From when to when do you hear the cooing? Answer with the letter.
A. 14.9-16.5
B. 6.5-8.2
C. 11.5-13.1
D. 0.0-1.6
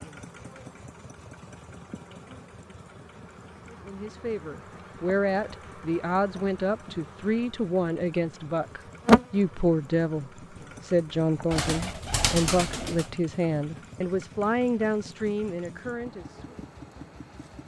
C.